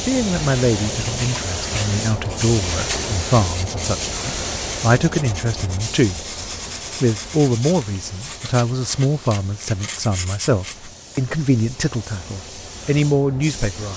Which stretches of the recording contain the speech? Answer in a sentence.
You can hear the speech from 0.0 to 6.2 s and from 7.0 to 13.9 s.